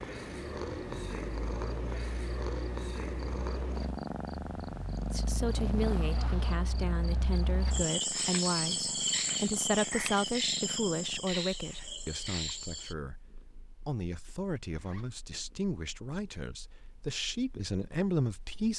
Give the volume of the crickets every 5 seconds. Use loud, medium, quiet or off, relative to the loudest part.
quiet, loud, loud, off.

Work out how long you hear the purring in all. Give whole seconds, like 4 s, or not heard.
19 s.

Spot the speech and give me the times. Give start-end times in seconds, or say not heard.
5.1-18.7.